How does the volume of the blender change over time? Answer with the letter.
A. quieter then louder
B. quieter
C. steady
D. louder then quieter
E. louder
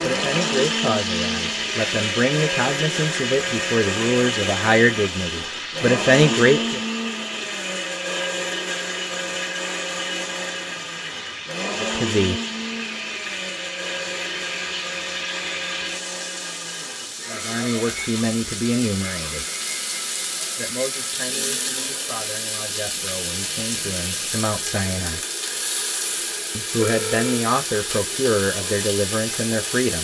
B.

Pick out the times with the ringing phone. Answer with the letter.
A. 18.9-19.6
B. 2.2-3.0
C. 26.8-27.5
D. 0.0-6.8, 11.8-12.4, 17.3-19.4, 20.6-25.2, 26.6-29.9
C.